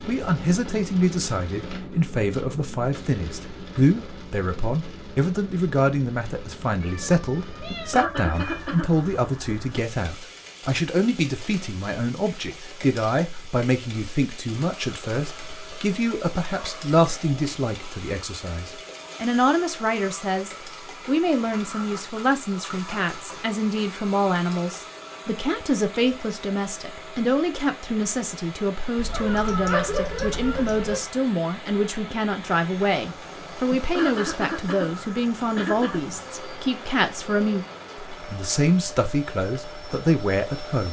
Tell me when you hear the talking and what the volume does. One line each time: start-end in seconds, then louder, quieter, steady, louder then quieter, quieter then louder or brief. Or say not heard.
0.1-40.8 steady.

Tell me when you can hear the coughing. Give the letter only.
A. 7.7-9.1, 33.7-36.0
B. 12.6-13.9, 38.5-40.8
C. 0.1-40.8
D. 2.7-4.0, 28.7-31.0
A.